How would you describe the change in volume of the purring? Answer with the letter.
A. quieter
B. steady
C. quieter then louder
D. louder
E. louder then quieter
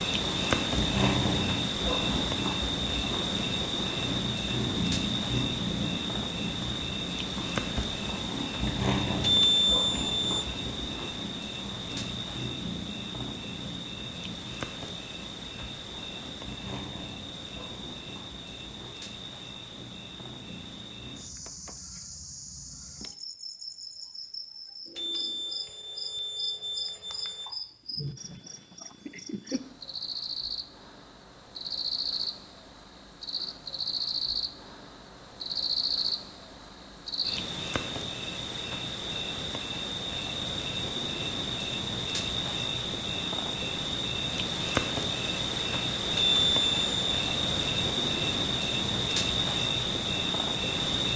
A.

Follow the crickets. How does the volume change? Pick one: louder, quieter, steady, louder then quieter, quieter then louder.
quieter then louder.